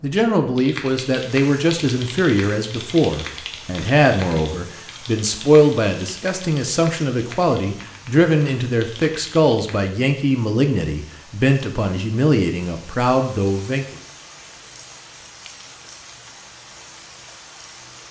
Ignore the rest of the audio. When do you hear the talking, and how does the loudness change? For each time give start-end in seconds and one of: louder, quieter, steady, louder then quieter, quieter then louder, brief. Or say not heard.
0.0-13.8 steady.